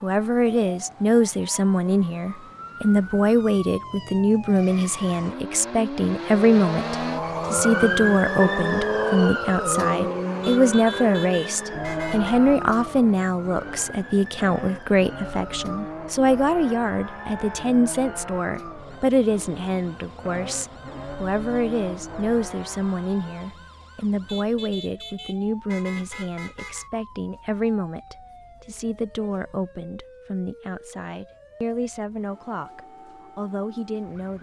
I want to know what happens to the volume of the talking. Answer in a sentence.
The volume of the talking goes down.